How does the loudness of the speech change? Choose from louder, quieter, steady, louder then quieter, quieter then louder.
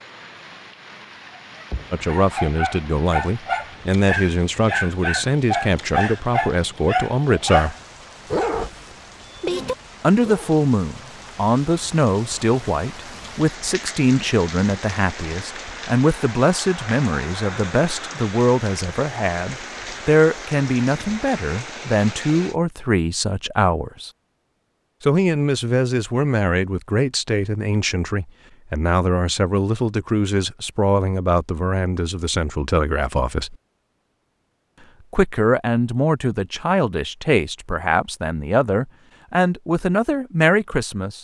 steady.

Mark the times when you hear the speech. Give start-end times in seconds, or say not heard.
1.9-7.8, 10.0-24.1, 25.0-33.5, 35.1-41.1.